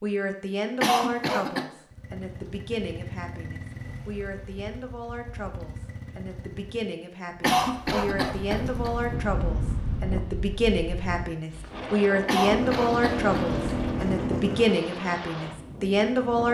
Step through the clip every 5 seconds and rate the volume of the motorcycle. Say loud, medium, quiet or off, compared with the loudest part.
quiet, quiet, loud, off.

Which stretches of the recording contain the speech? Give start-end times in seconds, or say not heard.
0.0-16.4.